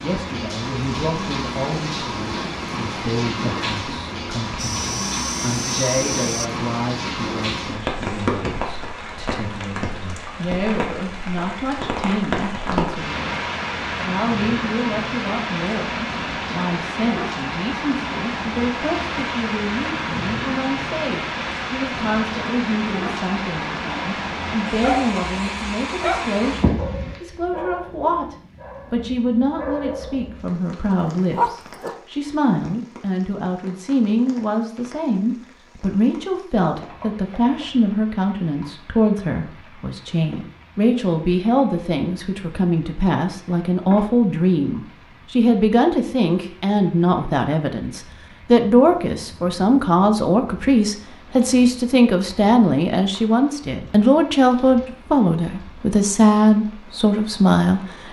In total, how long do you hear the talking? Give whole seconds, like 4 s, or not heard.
58 s.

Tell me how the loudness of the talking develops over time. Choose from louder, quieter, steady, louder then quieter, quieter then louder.
louder.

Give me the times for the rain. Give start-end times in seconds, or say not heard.
0.0-58.0.